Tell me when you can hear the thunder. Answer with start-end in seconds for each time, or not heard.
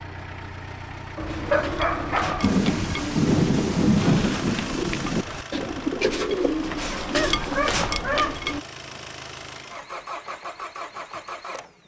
2.4-5.2.